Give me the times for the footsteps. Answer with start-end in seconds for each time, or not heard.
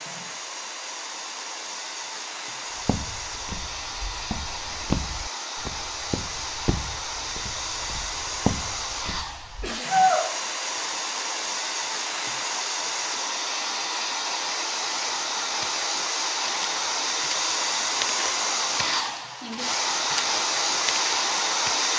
2.8-9.8, 14.8-21.9.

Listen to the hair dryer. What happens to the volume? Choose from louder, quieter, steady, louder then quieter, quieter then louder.
louder.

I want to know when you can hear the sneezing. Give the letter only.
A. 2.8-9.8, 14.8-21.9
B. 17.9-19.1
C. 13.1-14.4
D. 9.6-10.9
D.